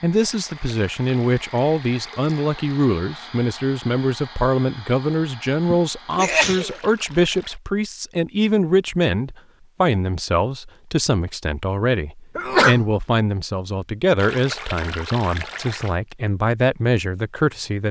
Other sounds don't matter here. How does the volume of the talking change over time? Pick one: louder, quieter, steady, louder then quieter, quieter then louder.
steady.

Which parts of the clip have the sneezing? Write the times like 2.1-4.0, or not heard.
5.7-6.8, 12.3-12.8.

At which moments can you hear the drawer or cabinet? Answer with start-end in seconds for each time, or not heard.
not heard.